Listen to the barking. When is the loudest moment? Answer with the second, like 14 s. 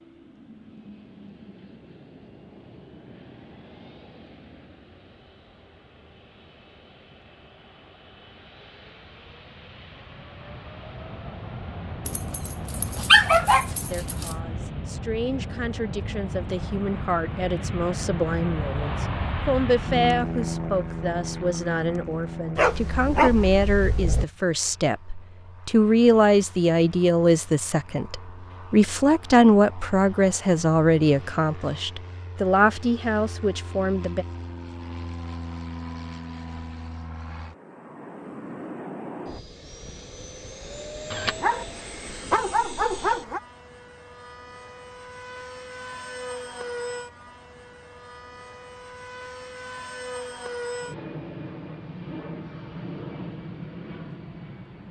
13 s.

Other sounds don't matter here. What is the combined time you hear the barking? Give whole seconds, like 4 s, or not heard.
6 s.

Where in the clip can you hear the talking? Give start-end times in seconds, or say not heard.
13.9-34.2.